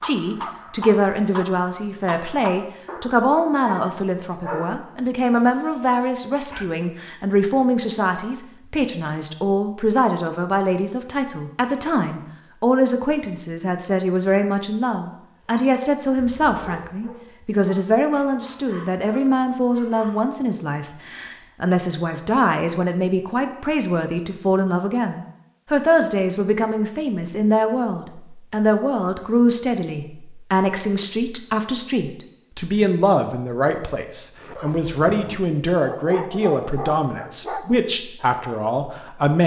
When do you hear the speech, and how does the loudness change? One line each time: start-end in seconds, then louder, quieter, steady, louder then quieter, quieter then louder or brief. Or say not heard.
0.0-39.4 steady.